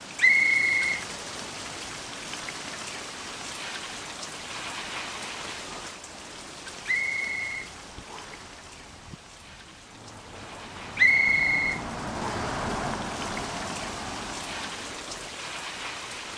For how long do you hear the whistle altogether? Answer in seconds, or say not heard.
4 s.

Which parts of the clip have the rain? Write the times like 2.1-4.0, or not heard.
0.0-16.3.